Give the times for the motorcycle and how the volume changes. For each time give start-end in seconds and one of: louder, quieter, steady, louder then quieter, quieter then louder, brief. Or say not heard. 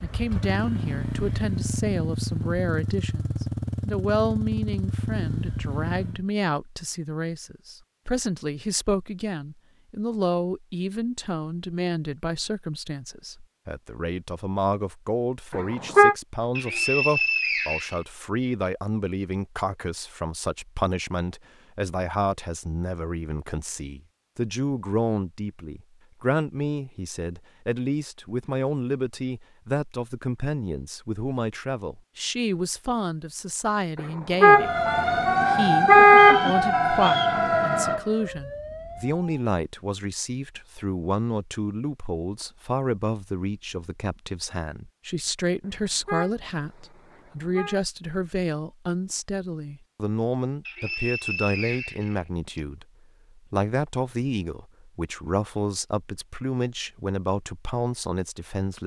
0.0-6.2 steady.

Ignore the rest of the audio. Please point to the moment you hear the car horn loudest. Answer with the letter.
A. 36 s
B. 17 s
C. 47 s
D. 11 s
A.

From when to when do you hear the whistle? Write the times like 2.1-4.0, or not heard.
16.6-18.0, 36.1-37.4, 50.6-52.6.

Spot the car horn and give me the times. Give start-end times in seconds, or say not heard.
15.5-16.1, 34.0-36.5, 45.6-47.8.